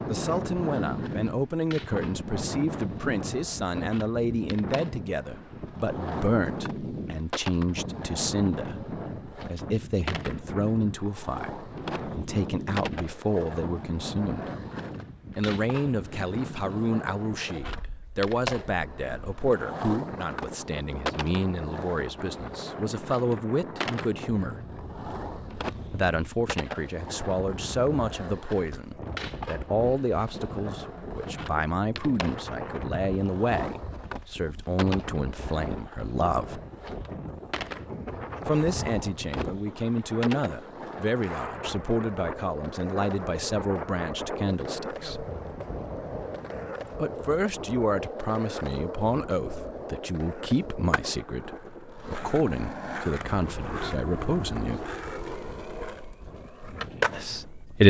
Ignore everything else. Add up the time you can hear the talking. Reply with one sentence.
You can hear the talking for 50 seconds altogether.